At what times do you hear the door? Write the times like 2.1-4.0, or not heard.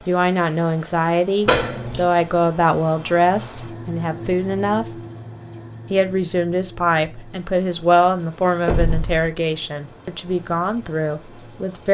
1.4-2.0, 8.7-9.2.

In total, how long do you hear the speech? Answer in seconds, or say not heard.
11 s.